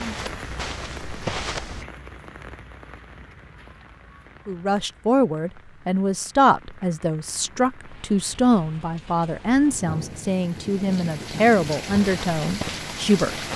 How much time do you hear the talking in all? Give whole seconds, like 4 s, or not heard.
9 s.